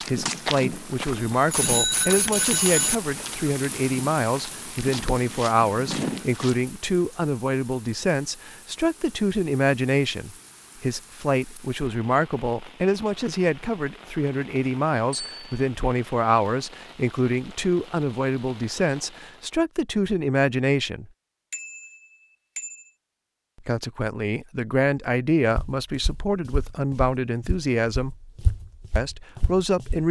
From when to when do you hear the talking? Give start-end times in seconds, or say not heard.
0.1-21.1, 23.6-28.1, 28.9-30.0.